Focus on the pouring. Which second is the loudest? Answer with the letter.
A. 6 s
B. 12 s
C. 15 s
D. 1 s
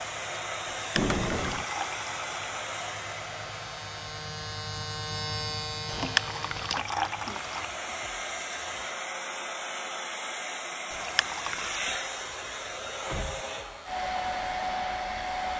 A.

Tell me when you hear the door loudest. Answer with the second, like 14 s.
1 s.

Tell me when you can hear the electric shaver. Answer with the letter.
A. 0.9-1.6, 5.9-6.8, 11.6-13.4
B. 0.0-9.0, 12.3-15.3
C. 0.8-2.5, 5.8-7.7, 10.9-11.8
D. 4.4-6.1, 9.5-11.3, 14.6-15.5
B.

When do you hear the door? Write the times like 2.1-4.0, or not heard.
0.9-1.6, 5.9-6.8, 11.6-13.4.